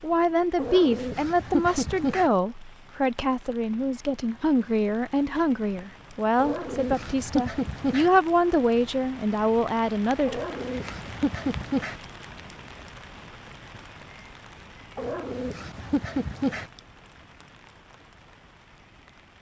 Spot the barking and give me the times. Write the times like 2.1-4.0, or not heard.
0.6-2.3, 6.3-8.1, 10.2-12.0, 14.9-16.7.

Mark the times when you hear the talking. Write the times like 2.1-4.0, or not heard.
0.0-10.4.